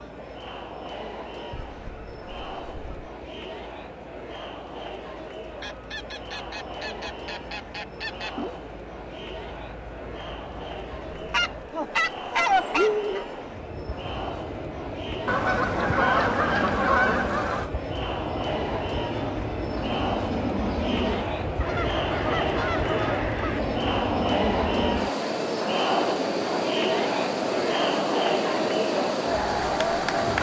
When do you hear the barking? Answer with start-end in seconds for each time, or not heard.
not heard.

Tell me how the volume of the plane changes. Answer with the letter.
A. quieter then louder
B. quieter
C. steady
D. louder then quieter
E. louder
E.